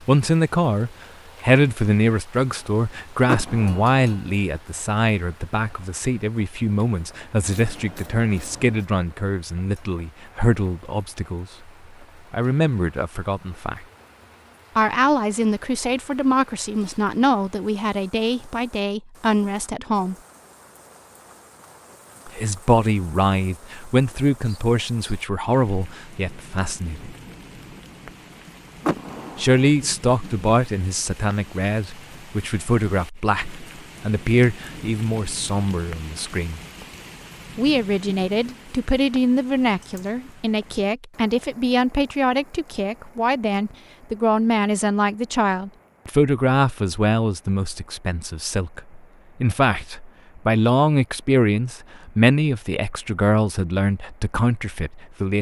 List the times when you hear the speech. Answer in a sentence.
You can hear the speech from 0.1 to 11.7 s, from 12.3 to 13.8 s, from 14.8 to 20.1 s, from 22.2 to 27.1 s, from 29.4 to 36.6 s and from 37.5 to 55.3 s.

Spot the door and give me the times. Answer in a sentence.
You can hear the door from 3.2 to 4.0 s and from 28.8 to 29.6 s.